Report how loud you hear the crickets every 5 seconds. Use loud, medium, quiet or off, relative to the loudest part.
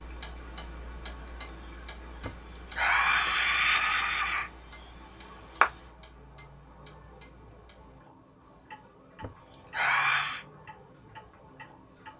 quiet, loud, loud.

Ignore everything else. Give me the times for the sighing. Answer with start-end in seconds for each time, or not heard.
2.2-4.5, 9.2-10.4.